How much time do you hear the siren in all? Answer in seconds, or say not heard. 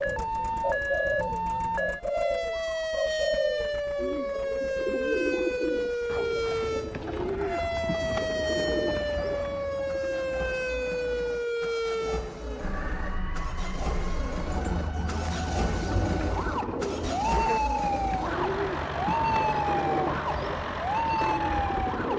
22 s.